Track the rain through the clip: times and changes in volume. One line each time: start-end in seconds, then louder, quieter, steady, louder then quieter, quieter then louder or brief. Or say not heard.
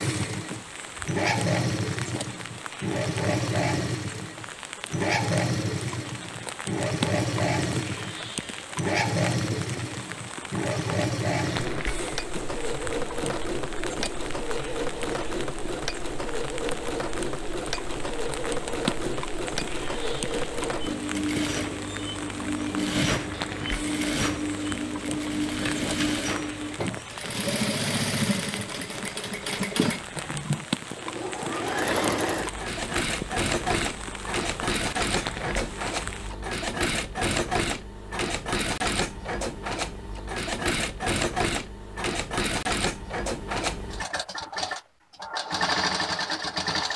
0.0-36.4 steady.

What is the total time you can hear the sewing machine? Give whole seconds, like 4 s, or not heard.
47 s.